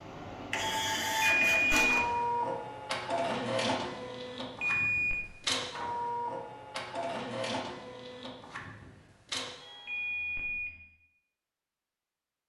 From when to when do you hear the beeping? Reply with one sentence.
You can hear the beeping from 1.4 to 2.0 s, from 4.6 to 5.2 s and from 9.8 to 10.8 s.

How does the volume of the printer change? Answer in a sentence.
The loudness of the printer goes down.